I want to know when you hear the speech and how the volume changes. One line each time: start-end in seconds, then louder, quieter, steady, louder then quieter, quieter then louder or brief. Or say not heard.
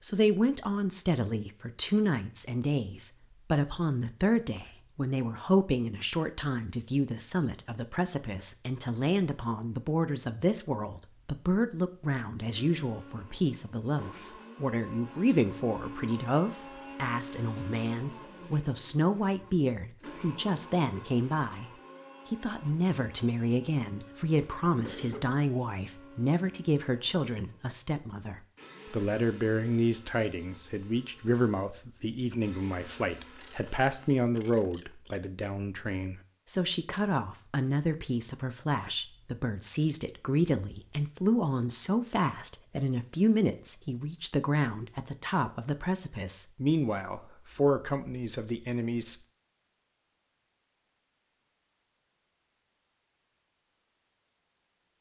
0.0-21.7 steady
22.3-49.1 steady.